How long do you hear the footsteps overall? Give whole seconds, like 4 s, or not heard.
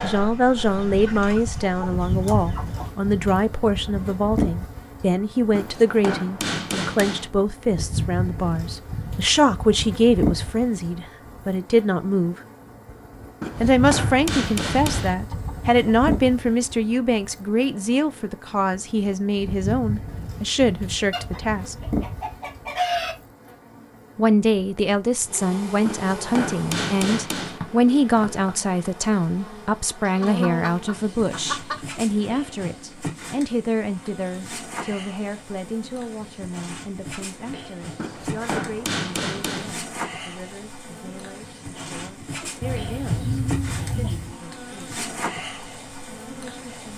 not heard.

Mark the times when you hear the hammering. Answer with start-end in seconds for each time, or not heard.
5.5-7.3, 13.4-15.2, 25.9-27.6, 38.0-39.8.